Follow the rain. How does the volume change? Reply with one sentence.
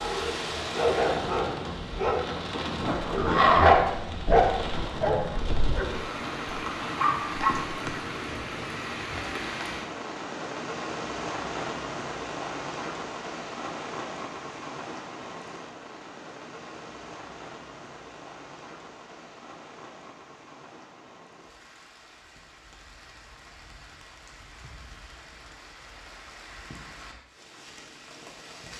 The volume of the rain goes down.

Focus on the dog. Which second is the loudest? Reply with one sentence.
The loudest moment of the dog is at 4 seconds.